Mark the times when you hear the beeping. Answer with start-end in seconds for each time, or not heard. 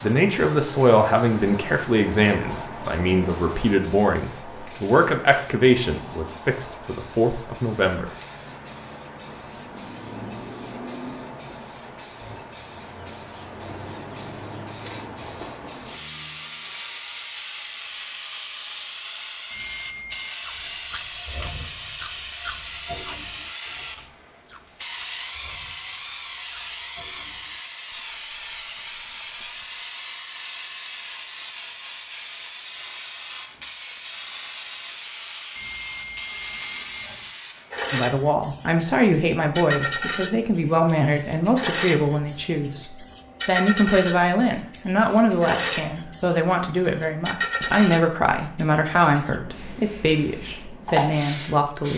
19.5-20.4, 35.5-37.3.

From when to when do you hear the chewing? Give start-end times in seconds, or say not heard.
20.4-29.9.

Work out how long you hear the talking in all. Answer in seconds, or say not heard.
22 s.